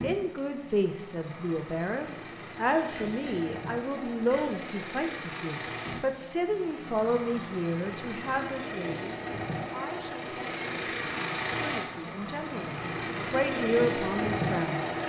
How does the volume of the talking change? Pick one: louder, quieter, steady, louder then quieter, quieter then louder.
quieter then louder.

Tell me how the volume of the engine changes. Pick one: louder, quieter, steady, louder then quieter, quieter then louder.
louder.